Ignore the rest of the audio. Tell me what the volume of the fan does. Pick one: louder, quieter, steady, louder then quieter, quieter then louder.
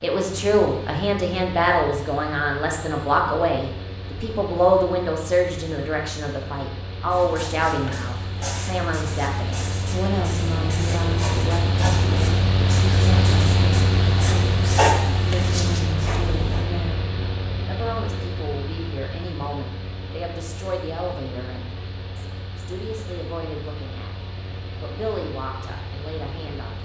louder then quieter.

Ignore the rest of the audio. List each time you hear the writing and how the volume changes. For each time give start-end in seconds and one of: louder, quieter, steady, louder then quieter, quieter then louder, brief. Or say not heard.
7.1-16.6 louder.